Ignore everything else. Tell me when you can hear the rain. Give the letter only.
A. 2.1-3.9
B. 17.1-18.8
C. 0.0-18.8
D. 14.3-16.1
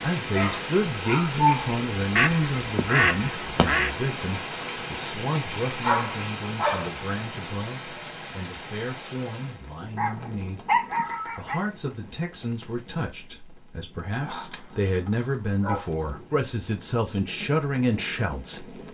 C.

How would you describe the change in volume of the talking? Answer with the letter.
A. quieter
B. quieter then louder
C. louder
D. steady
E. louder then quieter
B.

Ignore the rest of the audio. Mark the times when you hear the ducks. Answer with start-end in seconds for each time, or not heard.
2.1-3.9.